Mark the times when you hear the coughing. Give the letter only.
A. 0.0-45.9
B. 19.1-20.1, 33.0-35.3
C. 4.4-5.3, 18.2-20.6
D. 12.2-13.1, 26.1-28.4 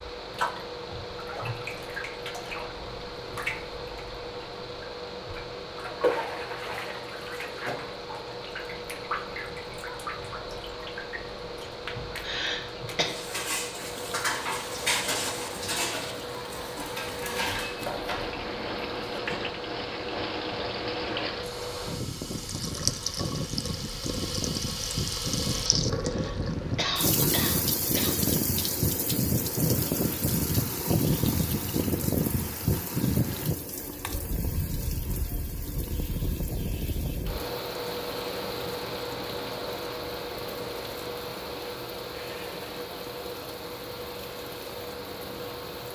D.